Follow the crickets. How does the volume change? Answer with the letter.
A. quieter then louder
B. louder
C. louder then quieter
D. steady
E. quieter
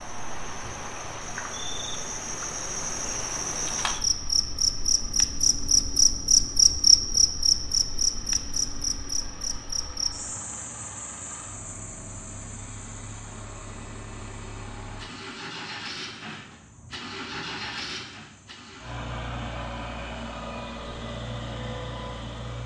C.